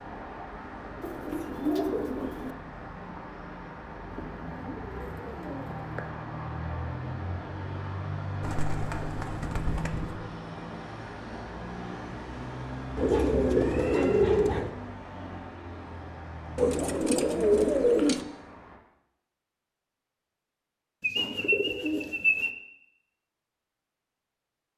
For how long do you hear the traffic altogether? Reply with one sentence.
You can hear the traffic for 19 seconds altogether.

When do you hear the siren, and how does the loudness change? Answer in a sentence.
You can't hear the siren here.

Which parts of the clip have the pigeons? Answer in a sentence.
The pigeons can be heard from 1.0 to 2.5 s, from 4.1 to 6.1 s, from 8.4 to 10.2 s, from 12.9 to 14.7 s, from 16.6 to 18.2 s and from 21.0 to 22.5 s.